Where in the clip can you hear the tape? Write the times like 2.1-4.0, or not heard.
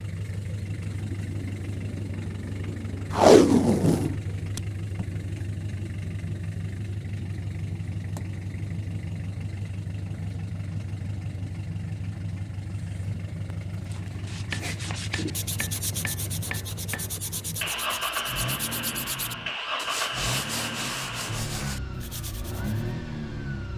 3.1-5.0.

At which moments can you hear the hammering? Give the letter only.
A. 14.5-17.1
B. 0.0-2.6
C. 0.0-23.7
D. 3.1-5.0
A.